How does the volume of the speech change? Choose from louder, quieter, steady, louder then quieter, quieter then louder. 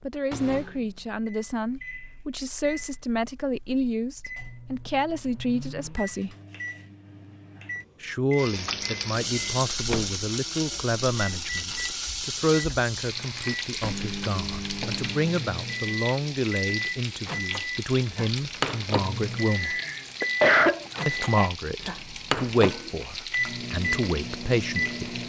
steady.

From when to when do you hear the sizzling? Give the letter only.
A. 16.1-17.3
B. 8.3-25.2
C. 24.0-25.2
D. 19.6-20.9
B.